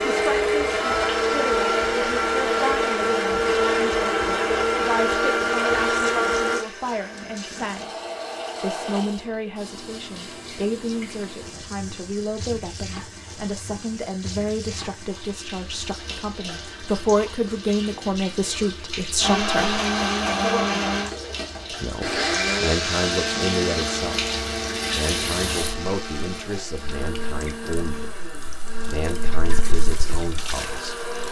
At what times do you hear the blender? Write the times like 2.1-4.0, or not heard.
0.0-6.7, 19.1-31.2.